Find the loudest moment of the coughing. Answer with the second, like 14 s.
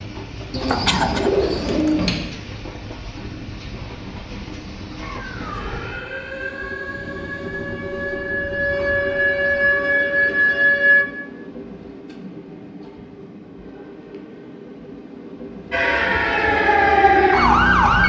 1 s.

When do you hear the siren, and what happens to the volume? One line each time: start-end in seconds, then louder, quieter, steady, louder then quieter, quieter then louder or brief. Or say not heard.
5.0-11.1 louder
15.7-18.0 brief.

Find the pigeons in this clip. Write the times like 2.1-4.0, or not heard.
0.5-2.2.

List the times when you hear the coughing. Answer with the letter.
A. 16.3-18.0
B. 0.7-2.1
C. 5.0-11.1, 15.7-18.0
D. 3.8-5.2
B.